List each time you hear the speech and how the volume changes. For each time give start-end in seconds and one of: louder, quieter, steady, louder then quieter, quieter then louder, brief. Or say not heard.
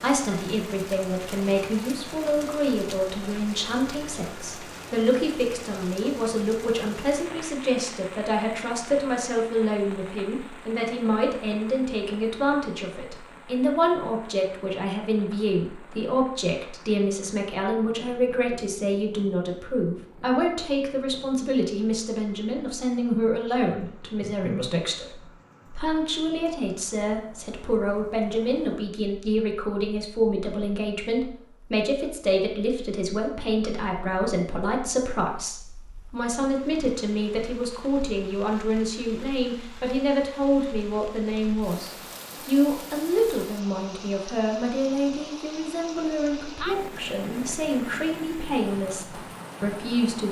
0.0-50.2 steady.